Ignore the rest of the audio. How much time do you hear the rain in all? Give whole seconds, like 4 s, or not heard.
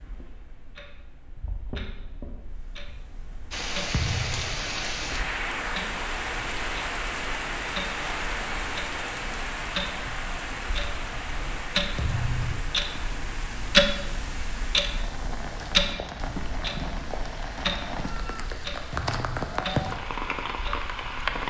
18 s.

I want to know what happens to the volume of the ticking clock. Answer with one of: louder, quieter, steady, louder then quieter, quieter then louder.
louder then quieter.